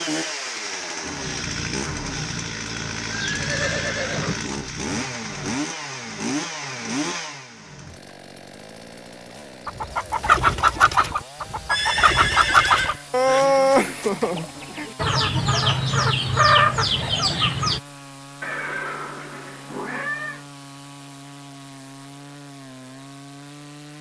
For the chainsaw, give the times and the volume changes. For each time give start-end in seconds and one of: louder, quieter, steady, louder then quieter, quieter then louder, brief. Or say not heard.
0.0-23.9 quieter.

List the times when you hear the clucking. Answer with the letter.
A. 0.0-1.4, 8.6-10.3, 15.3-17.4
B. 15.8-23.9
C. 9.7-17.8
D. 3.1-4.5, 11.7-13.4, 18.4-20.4
C.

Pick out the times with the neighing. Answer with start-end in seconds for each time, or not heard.
3.1-4.5, 11.7-13.4, 18.4-20.4.